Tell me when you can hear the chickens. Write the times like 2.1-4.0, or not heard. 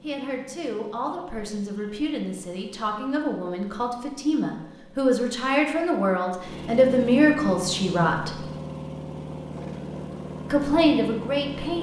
not heard.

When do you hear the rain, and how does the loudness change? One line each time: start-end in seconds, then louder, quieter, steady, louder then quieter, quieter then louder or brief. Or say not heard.
not heard.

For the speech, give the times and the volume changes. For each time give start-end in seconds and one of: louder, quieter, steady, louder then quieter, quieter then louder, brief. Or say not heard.
0.0-8.3 louder
10.5-11.7 brief.